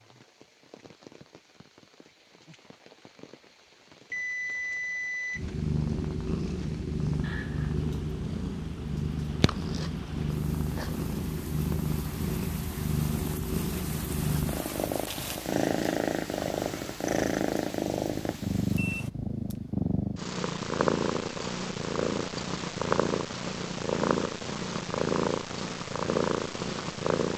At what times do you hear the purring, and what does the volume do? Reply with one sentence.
The purring can be heard from 5.3 to 27.3 s, at a steady volume.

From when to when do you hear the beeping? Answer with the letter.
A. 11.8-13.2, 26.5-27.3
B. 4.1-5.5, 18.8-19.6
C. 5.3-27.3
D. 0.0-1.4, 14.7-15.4
B.